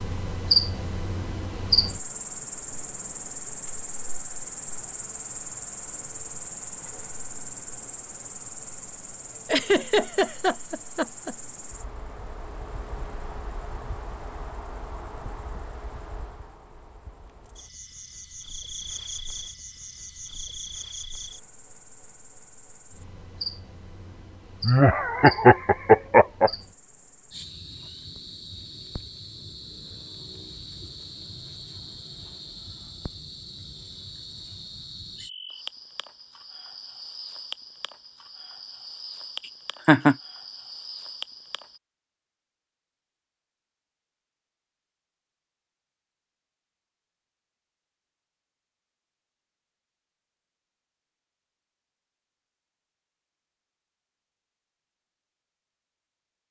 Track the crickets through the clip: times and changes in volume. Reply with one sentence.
The crickets can be heard from 0.0 to 41.8 s, getting quieter.